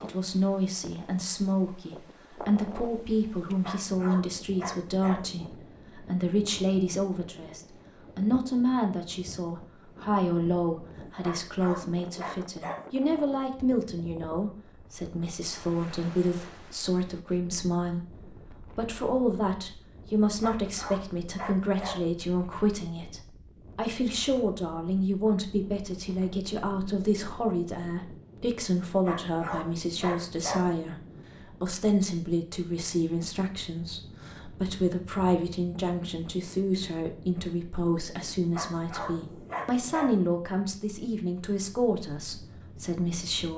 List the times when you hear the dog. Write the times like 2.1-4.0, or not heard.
3.6-5.2, 11.2-12.8, 20.4-21.9, 29.1-30.6, 38.5-40.1.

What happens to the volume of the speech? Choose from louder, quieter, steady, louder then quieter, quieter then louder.
steady.